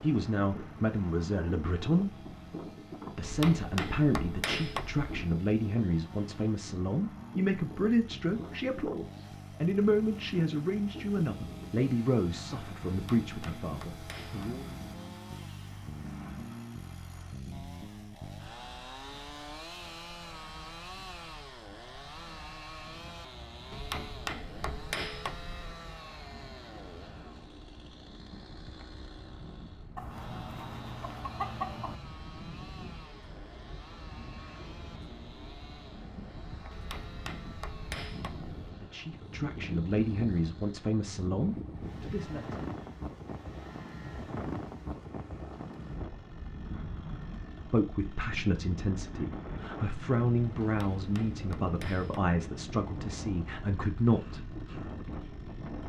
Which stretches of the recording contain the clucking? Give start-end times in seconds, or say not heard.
29.9-31.9.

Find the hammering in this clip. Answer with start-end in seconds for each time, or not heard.
3.2-5.1, 12.8-14.6, 23.7-25.8, 36.7-38.5, 50.6-52.3.